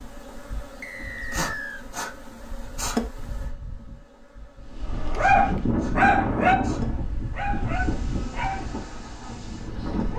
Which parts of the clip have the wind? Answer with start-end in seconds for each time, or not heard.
4.5-10.1.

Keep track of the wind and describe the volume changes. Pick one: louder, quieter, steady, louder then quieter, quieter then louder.
quieter.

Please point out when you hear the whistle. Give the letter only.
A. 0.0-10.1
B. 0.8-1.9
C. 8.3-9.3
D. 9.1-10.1
B.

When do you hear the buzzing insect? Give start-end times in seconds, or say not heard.
0.0-10.1.